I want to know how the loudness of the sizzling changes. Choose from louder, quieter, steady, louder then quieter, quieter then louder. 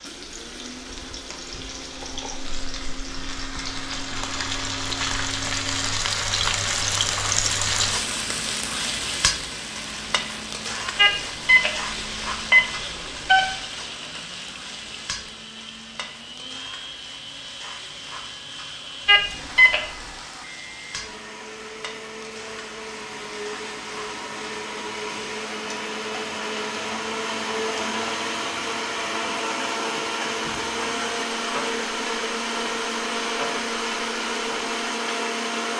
quieter.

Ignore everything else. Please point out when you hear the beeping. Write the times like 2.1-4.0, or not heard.
10.9-13.5, 19.1-20.1.